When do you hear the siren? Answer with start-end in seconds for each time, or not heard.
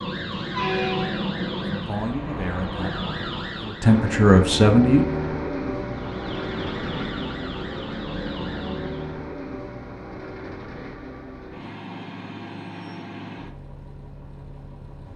0.0-4.0, 5.8-9.2.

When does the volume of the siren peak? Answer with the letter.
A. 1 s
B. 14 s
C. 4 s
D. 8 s
A.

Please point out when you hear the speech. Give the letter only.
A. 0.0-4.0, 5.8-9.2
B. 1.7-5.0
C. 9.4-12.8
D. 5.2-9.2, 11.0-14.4
B.